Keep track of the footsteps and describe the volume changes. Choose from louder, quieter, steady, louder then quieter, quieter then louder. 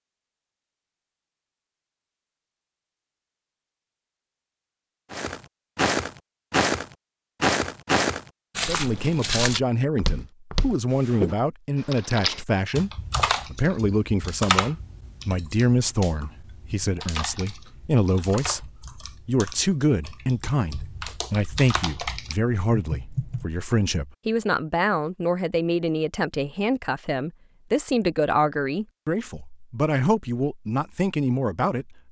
quieter.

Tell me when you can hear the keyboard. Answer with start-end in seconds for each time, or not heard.
11.8-23.4.